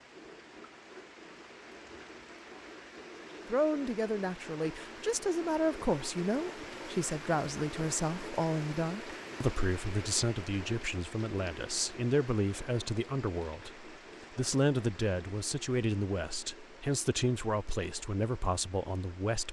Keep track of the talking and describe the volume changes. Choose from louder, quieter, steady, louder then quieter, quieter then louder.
steady.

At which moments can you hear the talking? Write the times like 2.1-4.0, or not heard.
3.5-19.4.